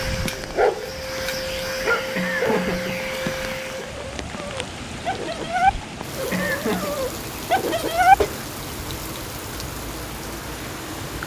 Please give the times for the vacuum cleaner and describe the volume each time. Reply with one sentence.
The vacuum cleaner can be heard from 0.0 to 4.0 s, getting louder.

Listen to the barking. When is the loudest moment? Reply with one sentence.
The volume of the barking peaks at 8 seconds.